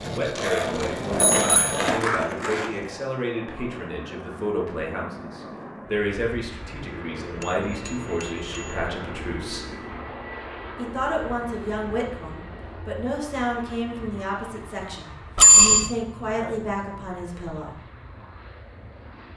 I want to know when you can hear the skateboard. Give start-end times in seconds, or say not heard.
0.0-2.9.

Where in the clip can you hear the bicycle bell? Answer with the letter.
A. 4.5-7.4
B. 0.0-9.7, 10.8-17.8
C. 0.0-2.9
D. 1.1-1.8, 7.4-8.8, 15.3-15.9
D.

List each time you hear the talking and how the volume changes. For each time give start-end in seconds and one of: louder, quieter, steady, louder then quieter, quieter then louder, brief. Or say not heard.
0.0-9.7 steady
10.8-17.8 steady.